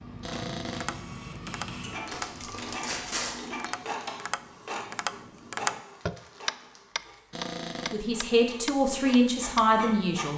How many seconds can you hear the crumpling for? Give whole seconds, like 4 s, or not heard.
3 s.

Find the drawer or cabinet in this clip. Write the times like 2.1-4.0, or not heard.
0.2-1.1, 7.3-8.0.